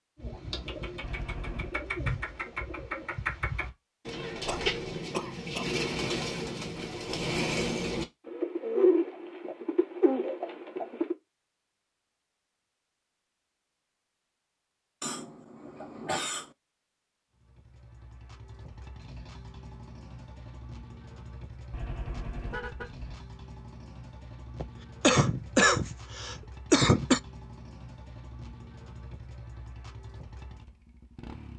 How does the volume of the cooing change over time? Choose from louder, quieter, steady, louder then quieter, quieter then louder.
louder.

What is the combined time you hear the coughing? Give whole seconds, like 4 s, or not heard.
5 s.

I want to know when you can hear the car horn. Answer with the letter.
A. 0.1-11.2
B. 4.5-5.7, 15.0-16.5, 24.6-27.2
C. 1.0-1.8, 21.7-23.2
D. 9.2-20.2
C.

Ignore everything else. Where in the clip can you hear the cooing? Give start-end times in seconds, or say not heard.
0.1-11.2.